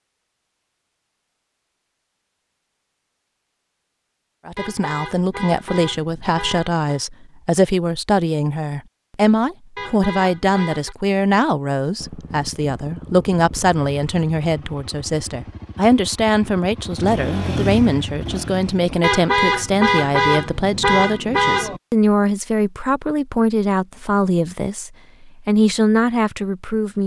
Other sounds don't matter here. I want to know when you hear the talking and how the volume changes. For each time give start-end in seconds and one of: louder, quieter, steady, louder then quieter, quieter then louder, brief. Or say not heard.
4.5-27.0 steady.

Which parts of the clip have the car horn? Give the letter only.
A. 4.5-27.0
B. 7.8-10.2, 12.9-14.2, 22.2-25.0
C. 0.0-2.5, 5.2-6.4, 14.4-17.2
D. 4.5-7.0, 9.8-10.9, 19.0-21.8
D.